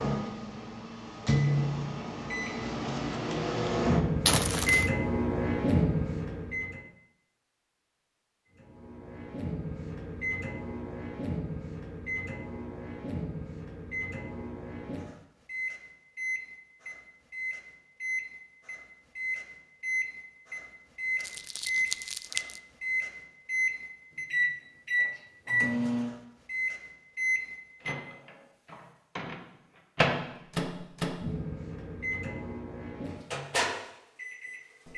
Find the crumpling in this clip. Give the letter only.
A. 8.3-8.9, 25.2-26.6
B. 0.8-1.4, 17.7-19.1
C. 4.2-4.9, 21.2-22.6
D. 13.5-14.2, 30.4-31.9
C.